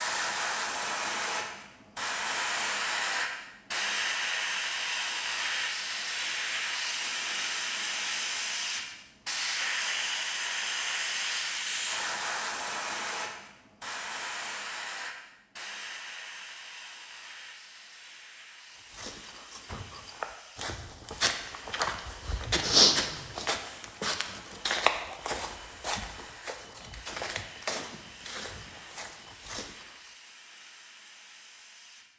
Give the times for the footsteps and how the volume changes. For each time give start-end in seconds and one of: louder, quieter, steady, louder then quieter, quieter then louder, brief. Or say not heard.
18.9-29.9 louder then quieter.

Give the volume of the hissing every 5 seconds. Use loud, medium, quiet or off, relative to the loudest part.
loud, loud, loud, quiet, quiet, quiet, quiet.